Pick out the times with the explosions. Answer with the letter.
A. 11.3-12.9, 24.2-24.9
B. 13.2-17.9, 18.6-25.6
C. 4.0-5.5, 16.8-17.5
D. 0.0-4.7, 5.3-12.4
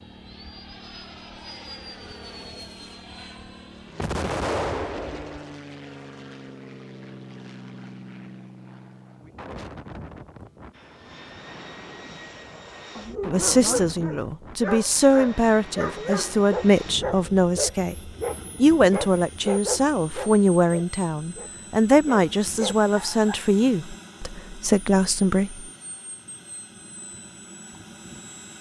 C.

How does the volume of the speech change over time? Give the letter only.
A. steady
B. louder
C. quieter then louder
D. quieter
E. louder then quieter
A.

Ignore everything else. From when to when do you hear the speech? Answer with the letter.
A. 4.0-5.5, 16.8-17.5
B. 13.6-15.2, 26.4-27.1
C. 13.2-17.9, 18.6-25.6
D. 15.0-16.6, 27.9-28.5
C.